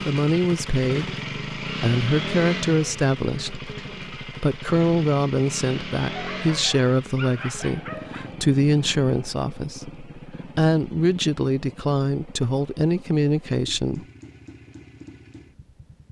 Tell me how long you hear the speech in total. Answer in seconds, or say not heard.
14 s.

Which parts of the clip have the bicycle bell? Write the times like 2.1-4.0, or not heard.
not heard.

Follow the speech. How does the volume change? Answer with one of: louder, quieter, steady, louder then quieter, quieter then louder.
steady.